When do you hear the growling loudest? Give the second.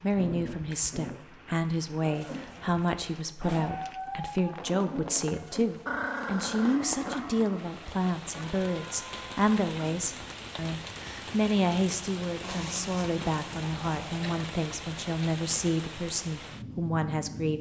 6 s.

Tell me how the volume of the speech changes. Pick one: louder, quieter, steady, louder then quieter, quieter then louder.
steady.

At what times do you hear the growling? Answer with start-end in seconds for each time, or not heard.
0.1-1.2, 5.8-7.2, 12.4-14.4.